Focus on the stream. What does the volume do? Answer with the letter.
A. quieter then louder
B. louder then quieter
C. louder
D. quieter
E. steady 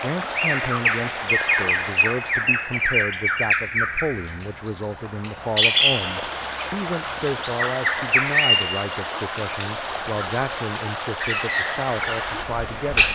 A.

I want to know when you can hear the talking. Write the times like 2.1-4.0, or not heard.
0.0-13.1.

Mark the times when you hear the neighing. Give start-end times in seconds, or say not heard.
not heard.